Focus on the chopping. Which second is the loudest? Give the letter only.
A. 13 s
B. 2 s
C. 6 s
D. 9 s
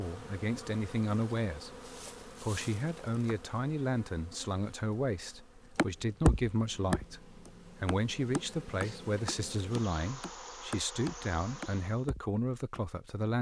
C.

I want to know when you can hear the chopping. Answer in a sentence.
The chopping can be heard from 5.8 to 12.8 s.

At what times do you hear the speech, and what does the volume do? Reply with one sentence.
You can hear the speech from 0.0 to 13.3 s, at a steady volume.